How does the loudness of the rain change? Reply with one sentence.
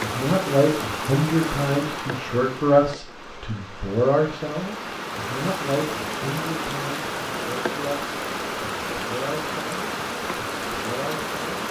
The loudness of the rain goes down, then up.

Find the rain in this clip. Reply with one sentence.
The rain can be heard from 0.0 to 11.6 s.